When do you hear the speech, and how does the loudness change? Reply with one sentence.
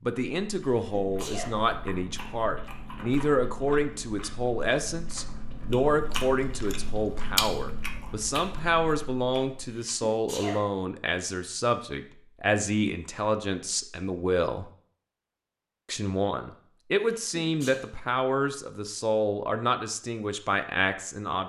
The speech can be heard from 0.0 to 14.7 s, at a steady volume; and from 15.8 to 21.4 s, at a steady volume.